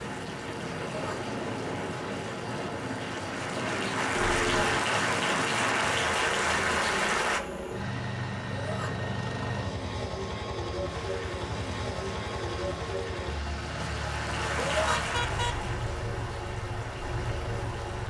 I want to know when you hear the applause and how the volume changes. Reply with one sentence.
You can hear the applause from 0.0 to 7.4 s, getting louder; and from 10.8 to 18.0 s, getting louder then quieter.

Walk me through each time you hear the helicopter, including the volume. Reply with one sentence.
You can hear the helicopter from 0.0 to 18.0 s, at a steady volume.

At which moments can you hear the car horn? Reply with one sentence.
The car horn can be heard from 4.2 to 4.8 s and from 14.9 to 15.7 s.